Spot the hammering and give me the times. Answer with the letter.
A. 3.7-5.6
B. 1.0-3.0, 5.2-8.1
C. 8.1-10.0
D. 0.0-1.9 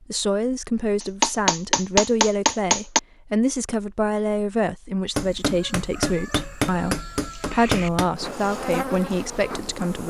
B.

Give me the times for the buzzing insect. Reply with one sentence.
You can hear the buzzing insect from 8.1 to 10.0 s.